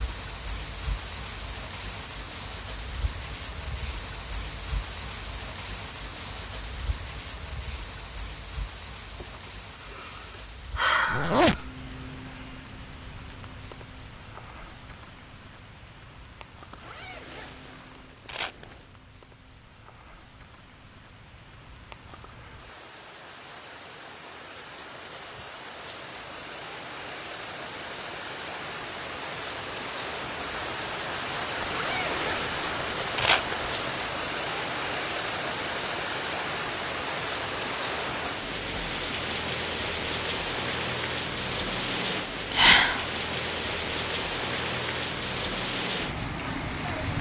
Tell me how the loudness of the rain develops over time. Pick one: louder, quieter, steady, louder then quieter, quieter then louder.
quieter then louder.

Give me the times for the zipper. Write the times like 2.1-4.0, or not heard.
11.1-11.7, 16.7-18.9, 31.6-33.9.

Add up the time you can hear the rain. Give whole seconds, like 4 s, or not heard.
47 s.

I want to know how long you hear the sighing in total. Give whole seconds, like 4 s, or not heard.
3 s.